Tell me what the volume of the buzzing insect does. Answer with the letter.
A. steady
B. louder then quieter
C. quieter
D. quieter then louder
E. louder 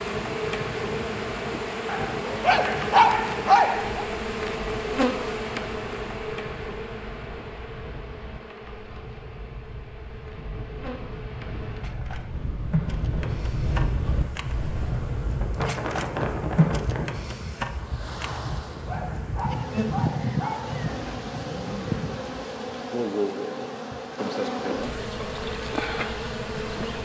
D.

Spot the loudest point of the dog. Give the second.
3 s.